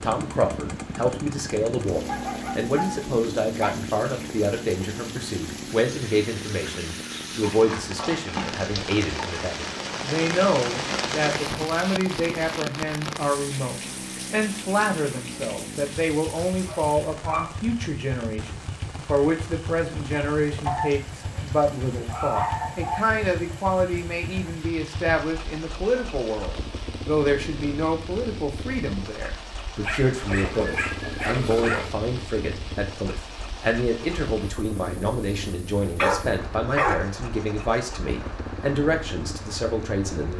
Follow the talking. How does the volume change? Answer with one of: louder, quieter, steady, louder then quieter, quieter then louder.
steady.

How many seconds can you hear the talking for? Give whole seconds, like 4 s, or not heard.
40 s.